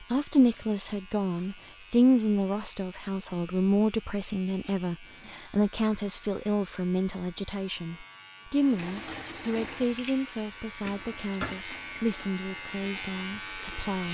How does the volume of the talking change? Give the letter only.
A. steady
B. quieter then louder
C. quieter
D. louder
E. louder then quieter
C.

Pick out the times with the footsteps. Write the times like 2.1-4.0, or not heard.
not heard.